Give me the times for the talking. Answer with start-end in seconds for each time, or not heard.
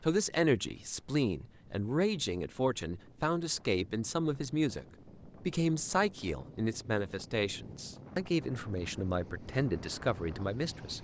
0.0-11.0.